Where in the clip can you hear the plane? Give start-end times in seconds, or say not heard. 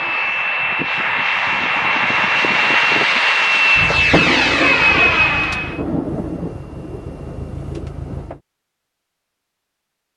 0.0-5.8.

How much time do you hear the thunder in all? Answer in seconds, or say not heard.
5 s.